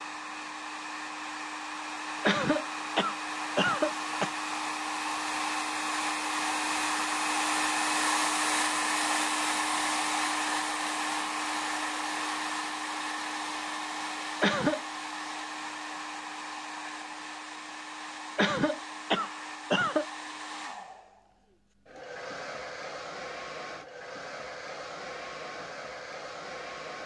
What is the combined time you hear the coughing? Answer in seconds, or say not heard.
4 s.